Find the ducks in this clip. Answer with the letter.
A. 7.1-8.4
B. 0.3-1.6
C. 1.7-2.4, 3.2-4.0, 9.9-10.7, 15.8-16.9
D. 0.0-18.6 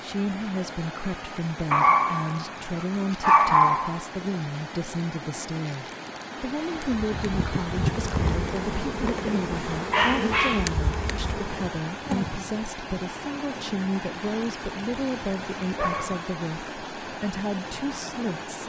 A.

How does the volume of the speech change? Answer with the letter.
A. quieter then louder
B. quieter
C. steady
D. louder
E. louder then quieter
C.